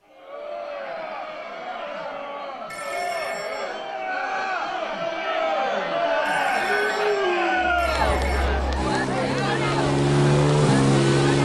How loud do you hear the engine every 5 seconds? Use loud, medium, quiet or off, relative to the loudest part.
off, medium, loud.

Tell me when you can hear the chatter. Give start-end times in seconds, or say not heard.
0.1-11.4.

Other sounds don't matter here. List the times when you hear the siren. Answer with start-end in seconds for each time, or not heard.
not heard.